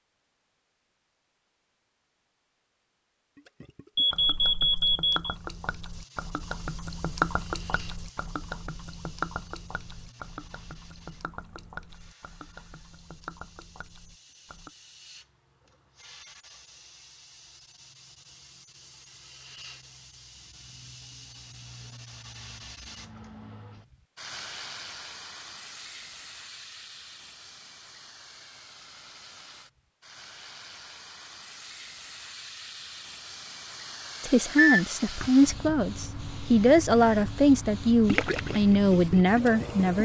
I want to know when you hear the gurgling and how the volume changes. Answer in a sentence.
You can hear the gurgling from 3.4 to 14.7 s, getting louder then quieter; and briefly from 38.0 to 39.9 s.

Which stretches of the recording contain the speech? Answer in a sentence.
The speech can be heard from 34.2 to 40.0 s.